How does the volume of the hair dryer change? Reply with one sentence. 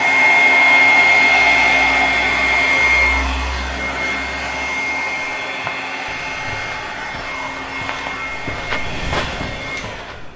The loudness of the hair dryer goes down.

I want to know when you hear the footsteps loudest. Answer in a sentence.
The loudest moment of the footsteps is at 9 seconds.